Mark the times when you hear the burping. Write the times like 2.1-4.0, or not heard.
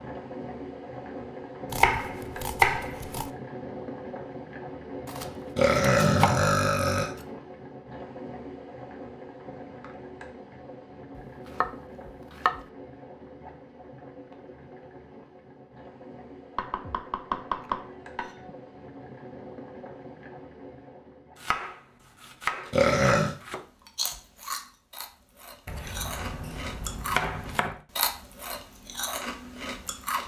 5.5-7.1, 22.7-23.4.